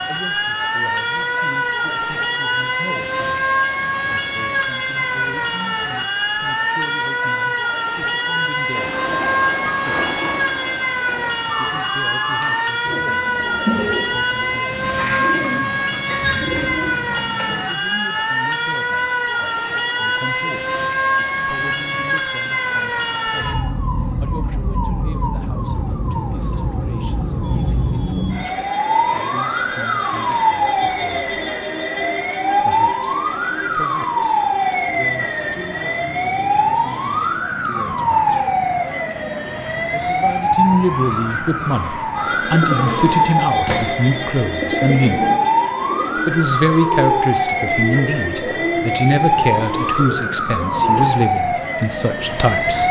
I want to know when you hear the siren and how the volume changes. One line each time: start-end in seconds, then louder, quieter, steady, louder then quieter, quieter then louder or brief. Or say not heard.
0.0-52.8 steady.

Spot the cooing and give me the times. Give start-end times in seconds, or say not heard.
8.7-17.6, 42.1-51.0.